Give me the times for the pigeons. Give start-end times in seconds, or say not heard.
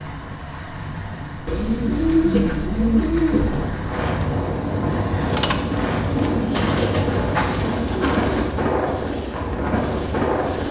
1.4-3.5, 5.5-8.4.